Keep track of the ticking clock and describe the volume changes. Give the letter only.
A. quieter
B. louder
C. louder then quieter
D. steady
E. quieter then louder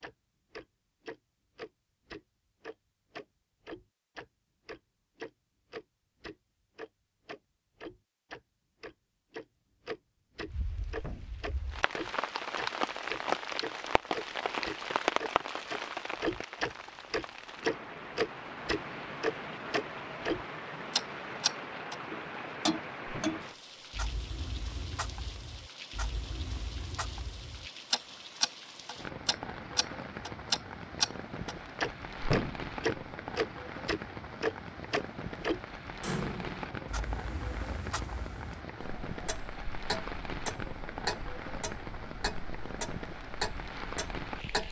C.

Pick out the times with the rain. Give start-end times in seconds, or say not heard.
10.4-44.6.